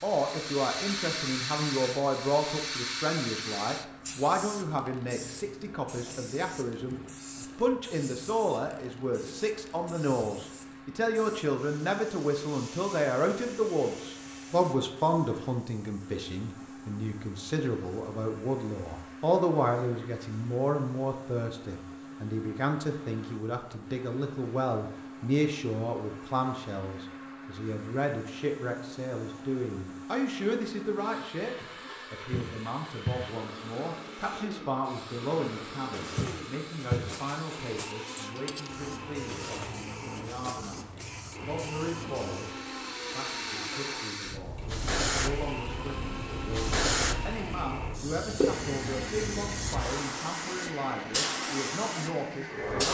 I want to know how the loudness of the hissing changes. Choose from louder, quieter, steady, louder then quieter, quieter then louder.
quieter then louder.